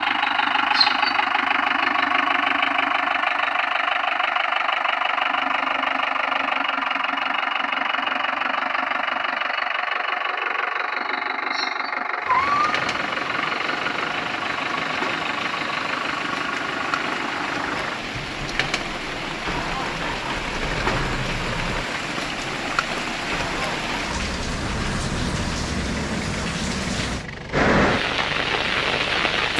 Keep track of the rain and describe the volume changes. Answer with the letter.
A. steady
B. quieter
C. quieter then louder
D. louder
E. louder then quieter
D.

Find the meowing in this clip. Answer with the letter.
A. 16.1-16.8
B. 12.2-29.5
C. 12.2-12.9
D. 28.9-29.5
C.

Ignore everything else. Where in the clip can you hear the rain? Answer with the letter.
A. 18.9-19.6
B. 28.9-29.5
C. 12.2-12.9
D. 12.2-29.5
D.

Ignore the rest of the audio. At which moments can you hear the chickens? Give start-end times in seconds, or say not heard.
not heard.